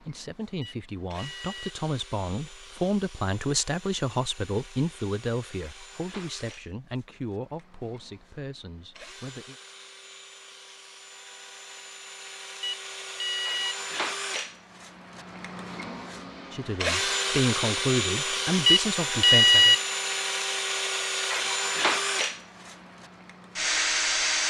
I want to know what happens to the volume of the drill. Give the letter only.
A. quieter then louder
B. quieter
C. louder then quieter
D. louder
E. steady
D.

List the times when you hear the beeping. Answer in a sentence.
The beeping can be heard from 0.6 to 1.8 s, from 12.6 to 13.8 s and from 18.6 to 19.8 s.